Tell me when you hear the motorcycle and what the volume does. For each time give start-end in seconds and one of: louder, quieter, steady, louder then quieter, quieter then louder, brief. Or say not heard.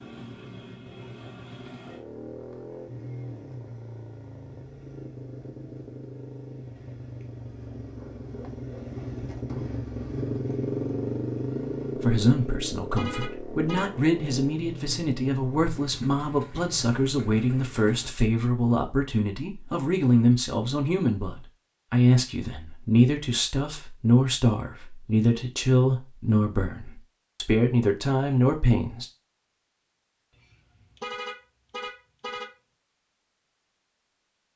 0.0-18.1 louder then quieter.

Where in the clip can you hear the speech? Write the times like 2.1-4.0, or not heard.
12.0-29.1.